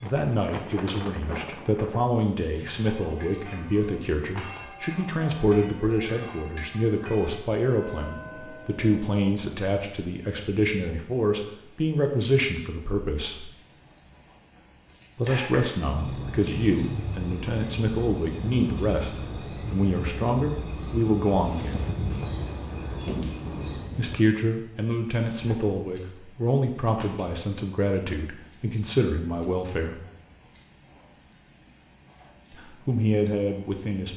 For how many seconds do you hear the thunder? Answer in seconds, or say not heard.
5 s.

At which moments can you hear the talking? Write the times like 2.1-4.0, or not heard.
0.0-13.5, 15.2-21.9, 23.9-30.0, 32.5-34.1.